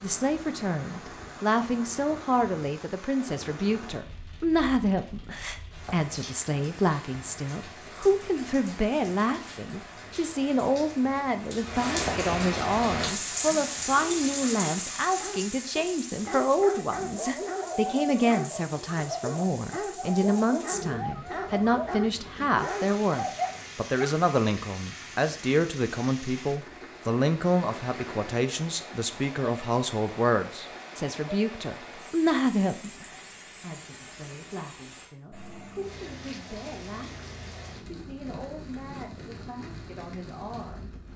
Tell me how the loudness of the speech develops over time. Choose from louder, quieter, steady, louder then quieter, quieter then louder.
quieter.